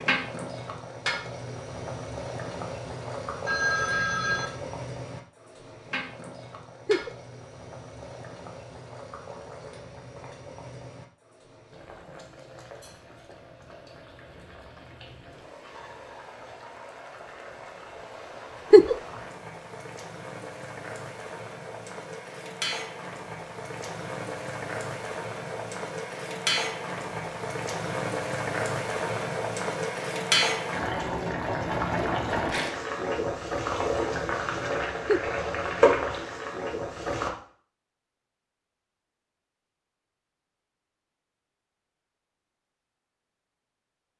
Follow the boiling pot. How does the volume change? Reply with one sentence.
The loudness of the boiling pot goes down, then up.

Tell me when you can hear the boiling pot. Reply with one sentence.
You can hear the boiling pot from 0.0 to 37.3 s.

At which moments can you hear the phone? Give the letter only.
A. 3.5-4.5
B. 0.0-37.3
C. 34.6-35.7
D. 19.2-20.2
A.